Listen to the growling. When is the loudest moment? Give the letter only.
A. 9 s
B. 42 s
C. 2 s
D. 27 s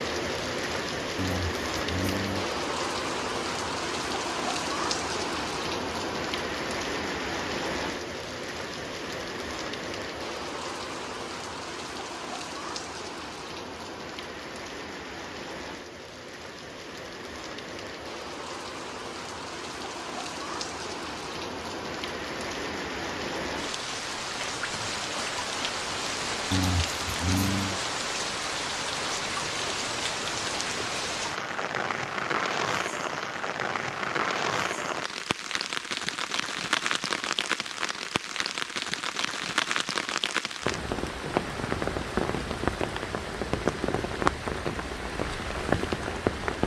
D.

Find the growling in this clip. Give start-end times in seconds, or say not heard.
1.1-2.5, 26.5-27.8.